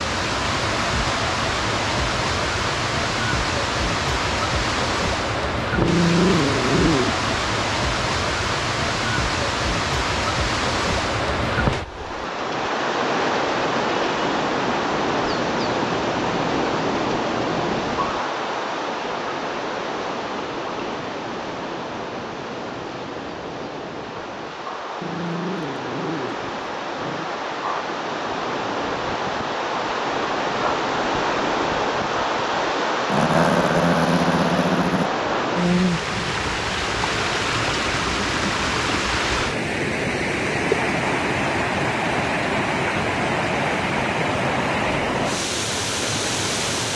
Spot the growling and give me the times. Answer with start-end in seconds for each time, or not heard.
5.8-7.3, 25.0-27.4, 33.0-35.1.